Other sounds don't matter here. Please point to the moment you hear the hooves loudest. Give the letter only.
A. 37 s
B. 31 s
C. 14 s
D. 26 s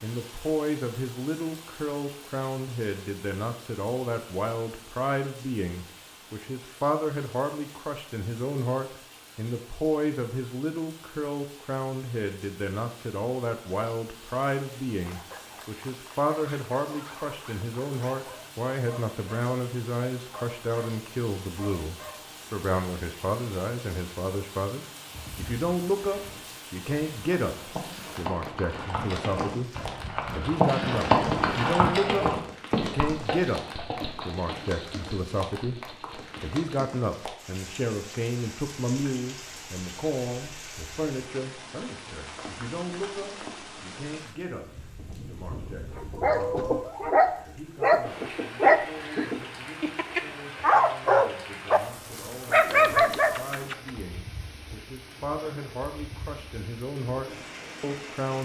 B.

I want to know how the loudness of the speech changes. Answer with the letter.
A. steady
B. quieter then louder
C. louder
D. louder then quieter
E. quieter
E.